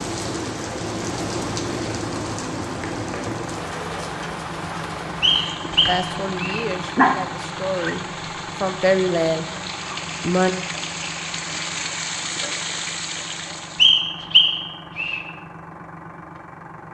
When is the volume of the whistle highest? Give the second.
14 s.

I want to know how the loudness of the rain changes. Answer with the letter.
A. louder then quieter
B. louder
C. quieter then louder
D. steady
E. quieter
C.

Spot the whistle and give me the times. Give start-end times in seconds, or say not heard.
5.2-6.7, 13.8-15.2.